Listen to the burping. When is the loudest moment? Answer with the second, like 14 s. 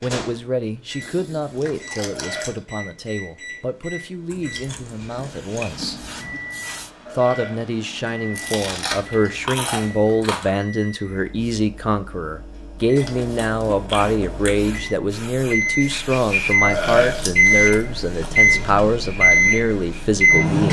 17 s.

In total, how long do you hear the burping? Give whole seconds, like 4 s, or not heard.
2 s.